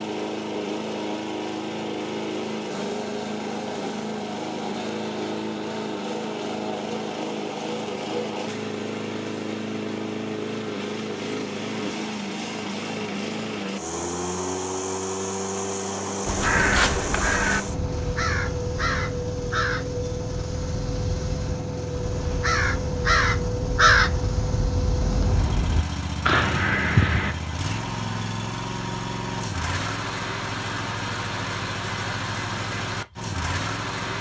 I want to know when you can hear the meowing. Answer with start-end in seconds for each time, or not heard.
not heard.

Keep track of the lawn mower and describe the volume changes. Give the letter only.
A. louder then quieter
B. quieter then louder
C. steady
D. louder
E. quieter
C.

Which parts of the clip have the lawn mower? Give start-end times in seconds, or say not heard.
0.0-34.1.